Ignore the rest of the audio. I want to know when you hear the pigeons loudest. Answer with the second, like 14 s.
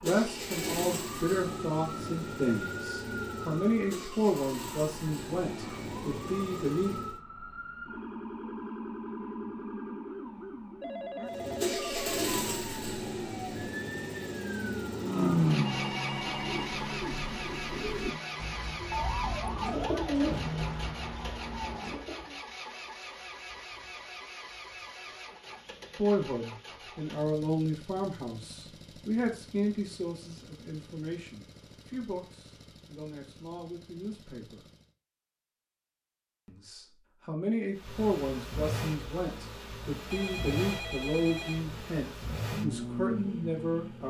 20 s.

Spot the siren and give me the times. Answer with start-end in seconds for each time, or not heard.
0.0-22.0.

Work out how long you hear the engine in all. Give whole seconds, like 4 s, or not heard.
37 s.